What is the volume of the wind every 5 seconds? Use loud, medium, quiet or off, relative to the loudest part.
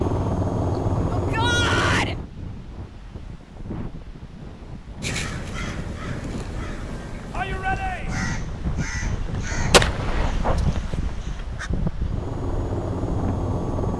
medium, loud, loud.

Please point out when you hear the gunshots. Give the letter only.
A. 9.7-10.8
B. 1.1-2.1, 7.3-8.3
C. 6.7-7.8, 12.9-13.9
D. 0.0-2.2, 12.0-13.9
A.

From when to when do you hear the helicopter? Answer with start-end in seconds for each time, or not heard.
0.0-2.2, 12.0-13.9.